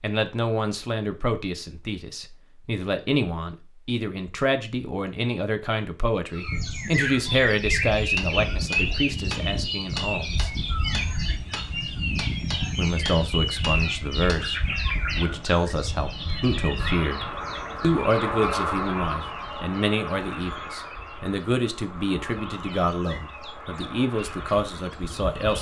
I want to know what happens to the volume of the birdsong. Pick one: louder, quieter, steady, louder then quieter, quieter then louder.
quieter.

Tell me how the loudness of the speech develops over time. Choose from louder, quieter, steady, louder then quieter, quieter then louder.
steady.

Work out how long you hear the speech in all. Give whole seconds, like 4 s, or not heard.
23 s.